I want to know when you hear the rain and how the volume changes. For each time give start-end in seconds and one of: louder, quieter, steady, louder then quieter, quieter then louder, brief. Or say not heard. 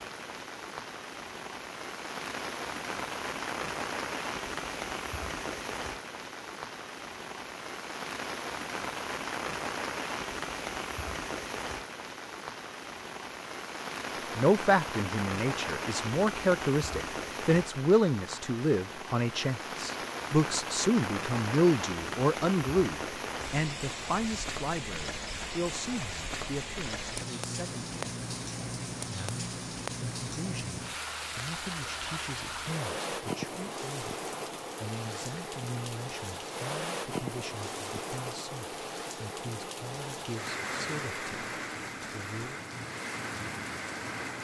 0.0-44.3 steady.